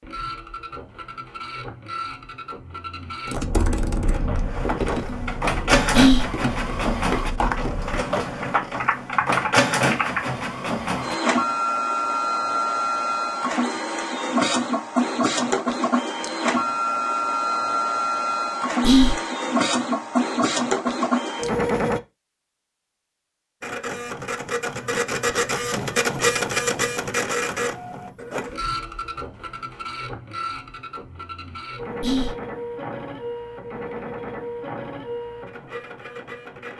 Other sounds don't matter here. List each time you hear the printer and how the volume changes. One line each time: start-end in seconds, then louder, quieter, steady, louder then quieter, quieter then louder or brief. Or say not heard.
0.0-22.0 louder
23.6-36.7 quieter.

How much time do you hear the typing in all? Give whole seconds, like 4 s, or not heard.
7 s.